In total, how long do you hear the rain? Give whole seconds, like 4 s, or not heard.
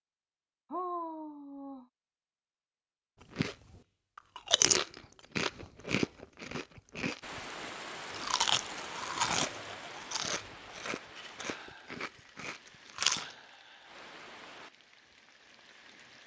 9 s.